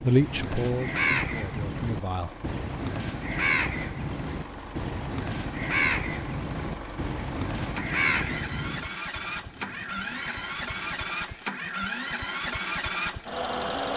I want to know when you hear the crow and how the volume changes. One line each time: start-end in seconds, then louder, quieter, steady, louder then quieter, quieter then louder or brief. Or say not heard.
0.0-11.6 quieter.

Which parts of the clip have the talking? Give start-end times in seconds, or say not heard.
0.0-2.3.